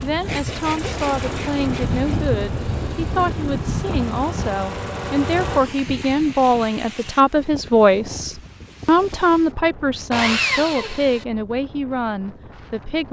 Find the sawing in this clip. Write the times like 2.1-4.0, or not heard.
0.2-2.2, 10.1-11.2.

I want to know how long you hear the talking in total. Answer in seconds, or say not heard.
13 s.